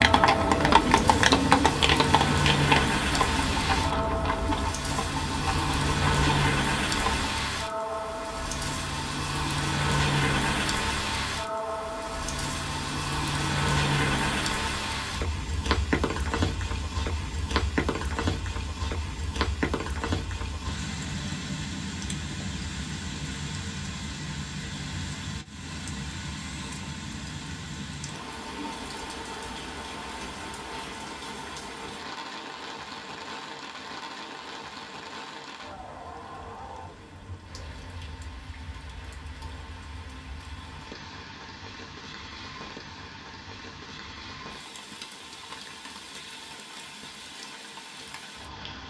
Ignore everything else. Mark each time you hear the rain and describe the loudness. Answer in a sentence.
You can hear the rain from 0.0 to 48.8 s, getting quieter.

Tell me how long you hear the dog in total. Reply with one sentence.
The dog can't be heard in this clip.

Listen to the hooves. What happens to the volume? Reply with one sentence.
The loudness of the hooves goes down.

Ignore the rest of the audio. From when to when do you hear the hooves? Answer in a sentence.
You can hear the hooves from 0.0 to 7.3 s.